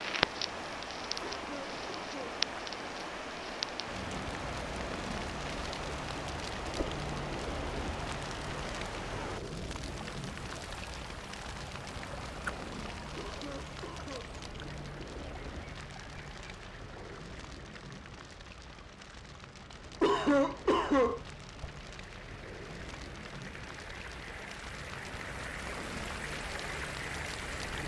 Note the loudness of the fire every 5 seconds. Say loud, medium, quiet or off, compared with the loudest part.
loud, loud, medium, medium, medium, medium.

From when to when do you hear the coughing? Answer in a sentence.
The coughing can be heard from 1.4 to 2.4 s, from 13.2 to 14.3 s and from 20.0 to 21.2 s.